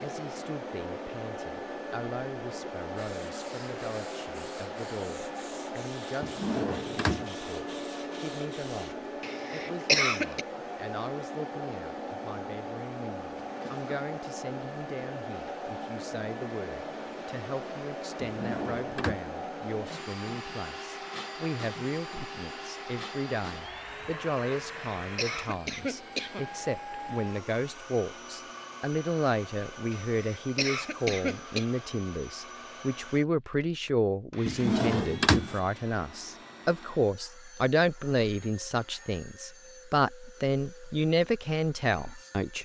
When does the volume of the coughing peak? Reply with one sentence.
The volume of the coughing peaks at 10 seconds.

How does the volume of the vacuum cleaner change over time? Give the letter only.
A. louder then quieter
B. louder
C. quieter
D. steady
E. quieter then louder
C.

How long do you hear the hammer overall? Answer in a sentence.
The hammer can't be heard in this clip.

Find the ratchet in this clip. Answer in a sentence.
You can't hear the ratchet here.